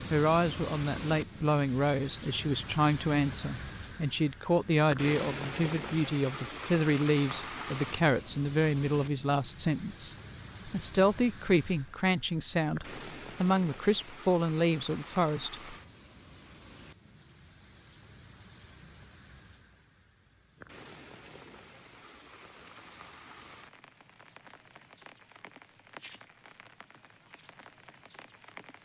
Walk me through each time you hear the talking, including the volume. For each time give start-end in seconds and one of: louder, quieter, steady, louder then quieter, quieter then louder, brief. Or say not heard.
0.1-15.8 steady.